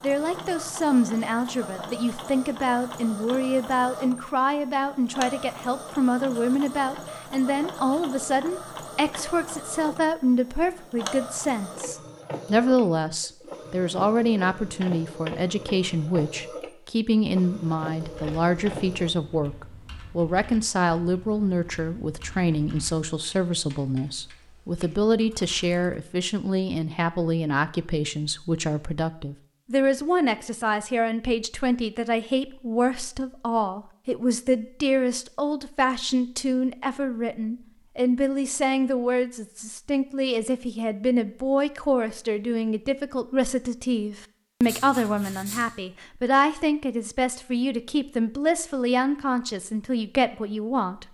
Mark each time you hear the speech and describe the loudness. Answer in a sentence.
The speech can be heard from 0.0 to 51.0 s, at a steady volume.